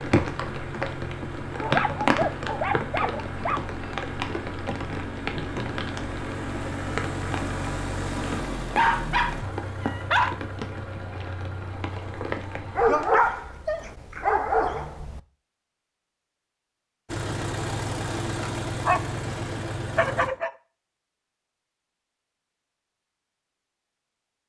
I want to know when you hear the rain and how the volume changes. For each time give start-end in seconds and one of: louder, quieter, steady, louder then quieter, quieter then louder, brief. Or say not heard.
0.0-13.6 quieter.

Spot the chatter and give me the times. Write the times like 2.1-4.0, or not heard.
not heard.